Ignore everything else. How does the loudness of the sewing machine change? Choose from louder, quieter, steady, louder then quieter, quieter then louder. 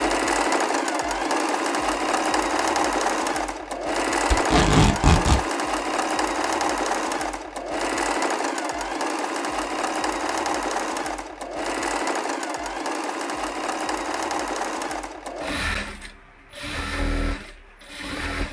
quieter.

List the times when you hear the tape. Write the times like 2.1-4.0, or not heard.
4.3-5.5.